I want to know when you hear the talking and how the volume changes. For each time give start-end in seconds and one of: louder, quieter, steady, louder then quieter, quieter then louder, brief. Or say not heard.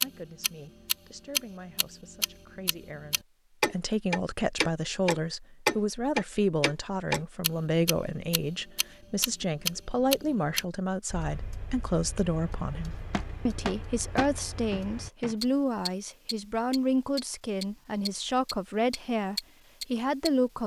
0.0-20.6 louder.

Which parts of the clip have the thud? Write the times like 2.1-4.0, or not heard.
13.1-15.3.